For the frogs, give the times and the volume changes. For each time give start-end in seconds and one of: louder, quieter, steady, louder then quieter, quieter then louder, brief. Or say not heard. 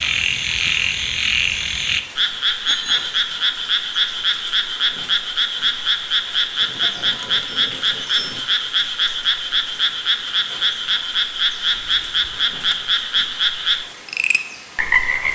0.0-15.3 steady.